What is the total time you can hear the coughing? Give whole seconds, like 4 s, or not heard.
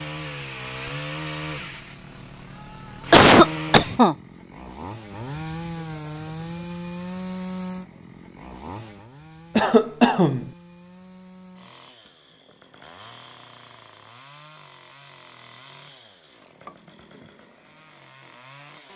2 s.